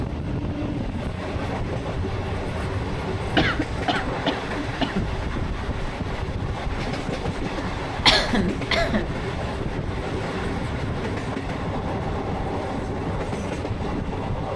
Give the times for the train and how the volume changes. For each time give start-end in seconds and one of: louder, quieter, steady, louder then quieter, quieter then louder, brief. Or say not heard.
0.0-14.5 steady.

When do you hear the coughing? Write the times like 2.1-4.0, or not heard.
3.2-5.2, 8.1-9.1.